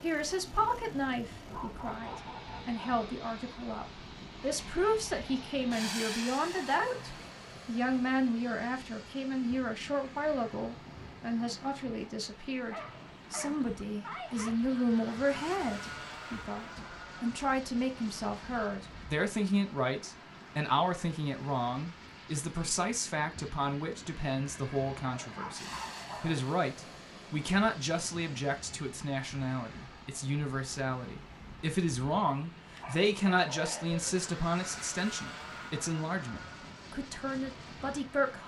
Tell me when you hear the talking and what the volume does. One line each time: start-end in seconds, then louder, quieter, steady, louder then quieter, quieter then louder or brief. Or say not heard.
0.0-38.4 steady.